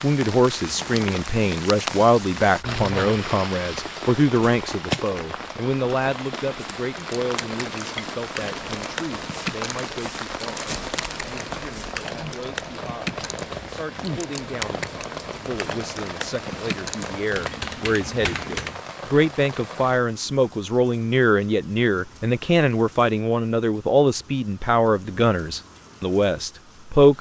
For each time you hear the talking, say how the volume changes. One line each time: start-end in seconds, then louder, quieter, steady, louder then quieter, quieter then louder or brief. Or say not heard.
0.0-27.1 quieter then louder.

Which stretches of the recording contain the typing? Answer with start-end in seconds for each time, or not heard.
7.0-18.8.